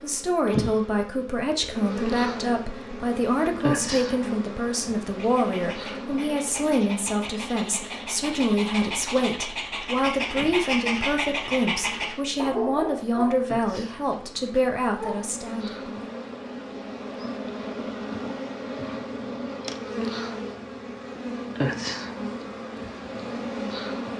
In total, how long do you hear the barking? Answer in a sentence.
You can hear the barking for 10 seconds altogether.